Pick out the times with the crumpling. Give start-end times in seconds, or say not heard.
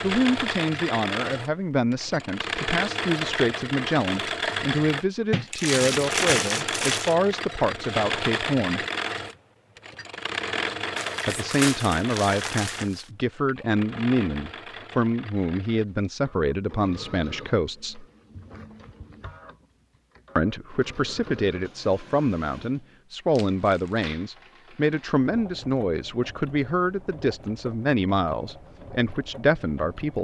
5.3-7.2, 10.9-13.1, 23.4-24.1.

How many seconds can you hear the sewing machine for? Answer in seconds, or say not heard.
30 s.